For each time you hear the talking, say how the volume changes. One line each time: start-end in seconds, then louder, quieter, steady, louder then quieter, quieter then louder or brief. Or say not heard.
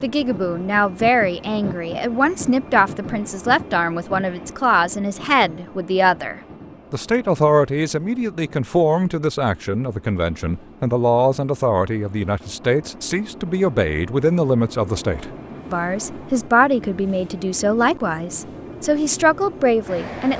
0.0-20.3 steady.